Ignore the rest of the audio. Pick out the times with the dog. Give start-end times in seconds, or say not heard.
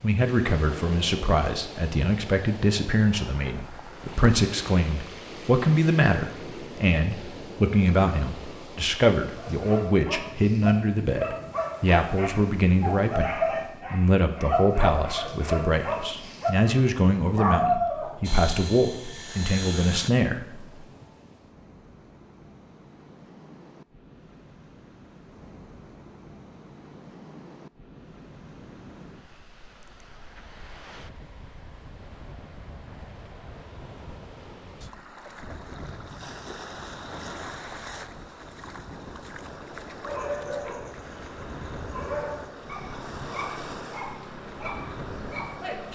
9.3-18.2, 40.0-45.9.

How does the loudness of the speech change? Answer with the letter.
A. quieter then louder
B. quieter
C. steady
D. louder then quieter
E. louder
C.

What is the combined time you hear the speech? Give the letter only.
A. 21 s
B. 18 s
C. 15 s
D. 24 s
A.